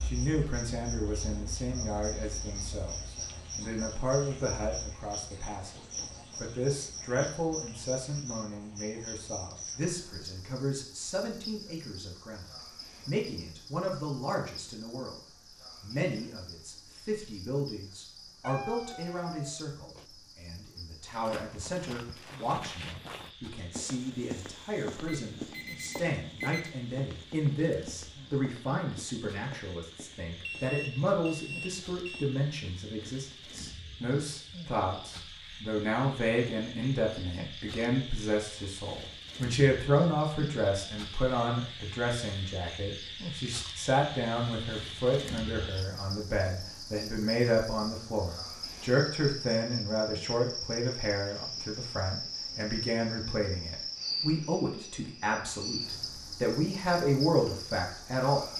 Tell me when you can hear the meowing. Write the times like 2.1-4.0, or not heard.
18.4-20.1.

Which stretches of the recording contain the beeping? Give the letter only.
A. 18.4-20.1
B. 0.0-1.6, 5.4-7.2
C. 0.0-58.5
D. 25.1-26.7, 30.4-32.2
D.